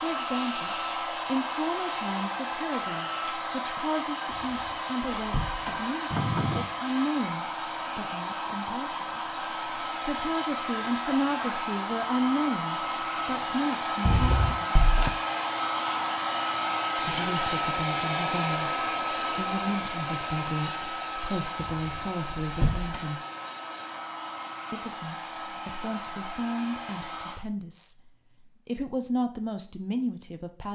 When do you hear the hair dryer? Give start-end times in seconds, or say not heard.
0.0-27.4.